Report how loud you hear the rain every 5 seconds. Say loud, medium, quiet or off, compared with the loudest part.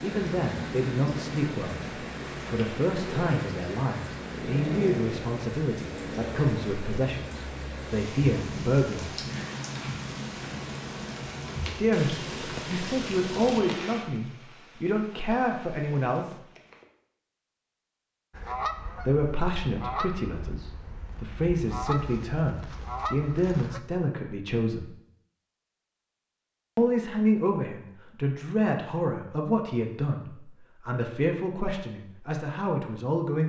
loud, loud, loud, quiet, off, off, off.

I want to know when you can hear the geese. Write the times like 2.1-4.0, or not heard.
18.3-23.8.